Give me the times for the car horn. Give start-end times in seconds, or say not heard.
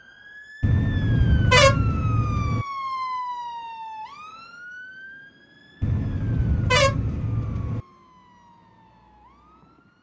0.6-2.6, 5.8-7.8.